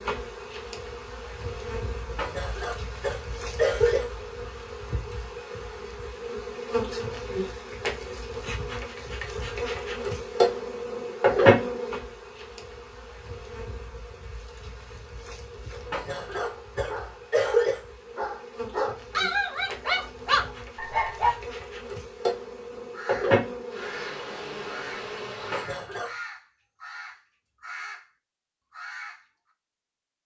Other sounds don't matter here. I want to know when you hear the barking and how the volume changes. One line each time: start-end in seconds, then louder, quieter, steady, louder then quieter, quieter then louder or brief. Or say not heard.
16.3-21.3 louder.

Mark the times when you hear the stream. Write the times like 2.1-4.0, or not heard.
not heard.